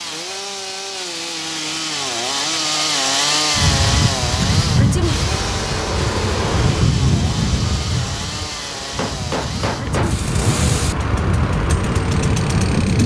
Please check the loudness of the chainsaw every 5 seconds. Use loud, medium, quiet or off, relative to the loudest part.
loud, medium, medium.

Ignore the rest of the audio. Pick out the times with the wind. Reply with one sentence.
The wind can be heard from 3.5 to 13.0 s.